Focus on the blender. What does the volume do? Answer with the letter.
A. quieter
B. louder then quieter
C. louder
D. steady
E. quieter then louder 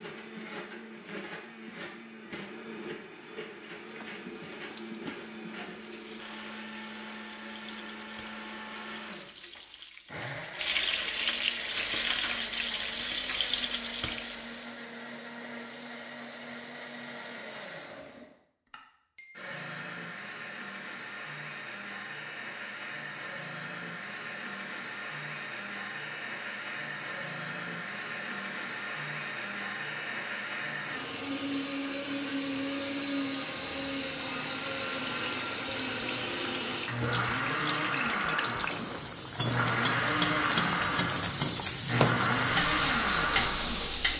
C.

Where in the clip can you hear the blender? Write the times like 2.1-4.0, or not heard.
0.0-44.1.